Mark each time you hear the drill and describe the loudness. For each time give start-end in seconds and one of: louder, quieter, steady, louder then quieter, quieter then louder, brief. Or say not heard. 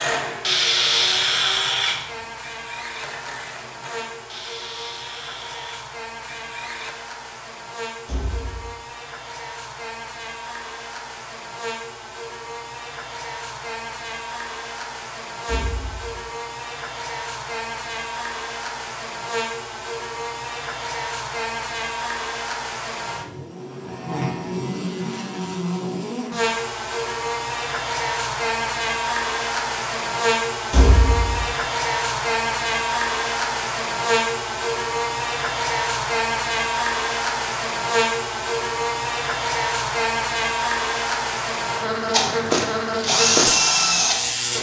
0.0-7.0 quieter
42.1-44.4 brief.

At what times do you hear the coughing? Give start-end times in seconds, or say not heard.
not heard.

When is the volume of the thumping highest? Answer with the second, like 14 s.
31 s.